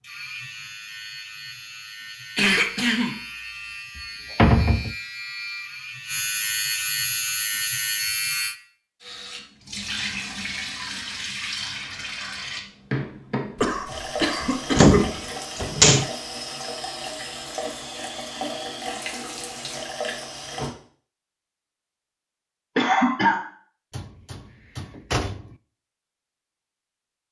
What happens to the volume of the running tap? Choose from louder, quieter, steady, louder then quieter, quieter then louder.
steady.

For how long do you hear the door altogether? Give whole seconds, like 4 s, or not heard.
4 s.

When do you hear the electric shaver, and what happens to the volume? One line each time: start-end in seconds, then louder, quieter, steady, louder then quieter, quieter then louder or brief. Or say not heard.
0.0-8.6 louder.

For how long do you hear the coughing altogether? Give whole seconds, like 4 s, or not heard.
3 s.